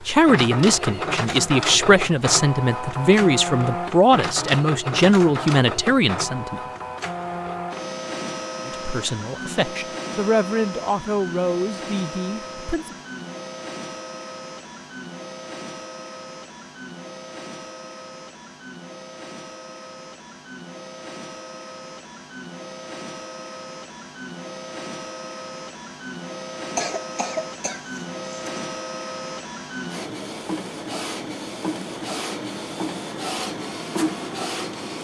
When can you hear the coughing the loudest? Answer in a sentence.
The loudest moment of the coughing is at 27 seconds.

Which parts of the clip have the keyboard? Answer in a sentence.
The keyboard can't be heard in this clip.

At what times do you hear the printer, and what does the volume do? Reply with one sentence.
You can hear the printer from 0.0 to 34.9 s, getting quieter then louder.